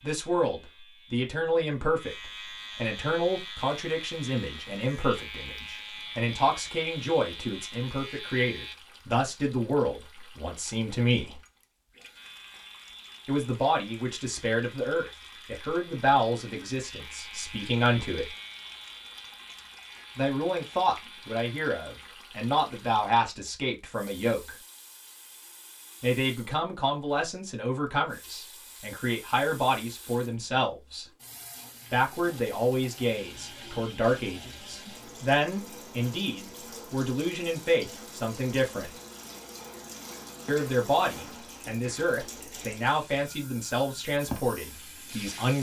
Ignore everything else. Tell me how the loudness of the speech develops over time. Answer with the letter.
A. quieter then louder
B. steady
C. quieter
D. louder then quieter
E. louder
B.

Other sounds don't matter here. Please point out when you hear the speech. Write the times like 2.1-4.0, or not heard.
0.0-11.4, 13.2-18.3, 20.1-24.6, 26.0-31.1, 31.9-38.9, 40.5-45.5.